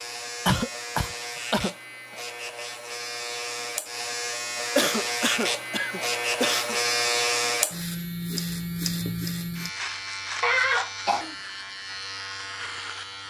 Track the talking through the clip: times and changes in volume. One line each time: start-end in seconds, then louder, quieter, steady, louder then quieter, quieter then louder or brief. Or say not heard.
not heard.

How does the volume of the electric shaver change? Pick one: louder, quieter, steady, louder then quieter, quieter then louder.
louder then quieter.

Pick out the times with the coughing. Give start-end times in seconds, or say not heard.
0.5-1.8, 4.8-6.8, 10.4-11.3.